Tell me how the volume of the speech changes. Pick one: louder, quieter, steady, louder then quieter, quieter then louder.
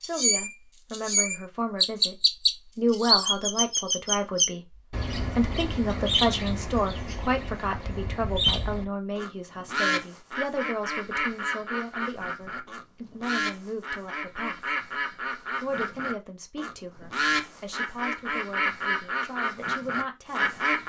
quieter.